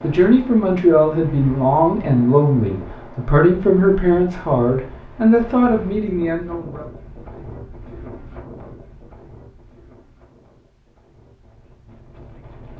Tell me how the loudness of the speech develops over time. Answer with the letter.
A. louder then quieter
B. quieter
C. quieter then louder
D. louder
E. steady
E.